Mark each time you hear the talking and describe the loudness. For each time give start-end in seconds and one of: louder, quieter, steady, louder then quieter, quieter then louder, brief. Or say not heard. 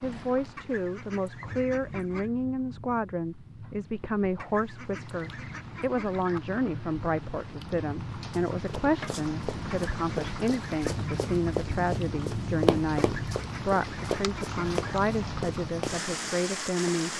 0.0-17.1 steady.